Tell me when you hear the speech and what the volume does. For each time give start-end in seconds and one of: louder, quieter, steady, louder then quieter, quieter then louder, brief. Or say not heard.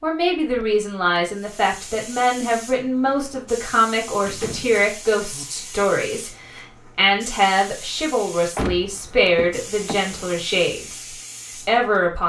0.0-11.1 steady
11.7-12.2 brief.